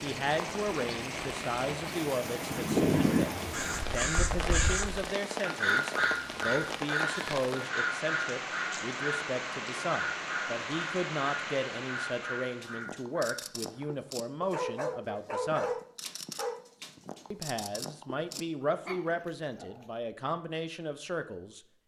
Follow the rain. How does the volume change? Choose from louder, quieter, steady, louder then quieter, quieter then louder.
steady.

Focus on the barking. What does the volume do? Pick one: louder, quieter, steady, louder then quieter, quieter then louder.
louder then quieter.